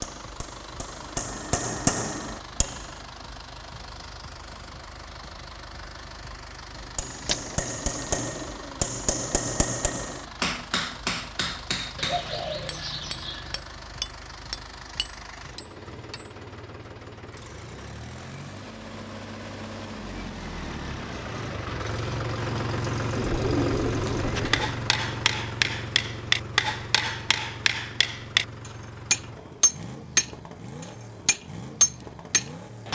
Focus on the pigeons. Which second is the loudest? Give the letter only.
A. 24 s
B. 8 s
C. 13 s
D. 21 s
A.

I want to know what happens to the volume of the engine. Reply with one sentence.
The volume of the engine goes up, then down.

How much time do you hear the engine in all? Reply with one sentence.
The engine can be heard for 33 seconds in total.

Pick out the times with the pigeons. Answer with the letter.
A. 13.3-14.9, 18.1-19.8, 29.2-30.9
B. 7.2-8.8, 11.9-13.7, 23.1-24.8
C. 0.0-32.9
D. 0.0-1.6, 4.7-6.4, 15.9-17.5
B.